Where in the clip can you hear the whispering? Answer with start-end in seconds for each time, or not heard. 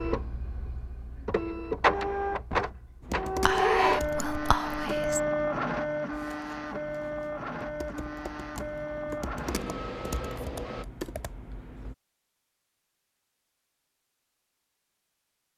3.5-5.2.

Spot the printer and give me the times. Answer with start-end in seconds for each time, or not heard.
0.0-10.8.